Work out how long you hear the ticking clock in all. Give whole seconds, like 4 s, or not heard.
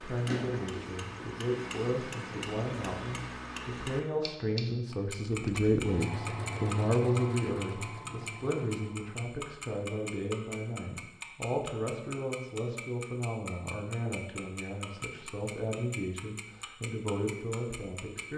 18 s.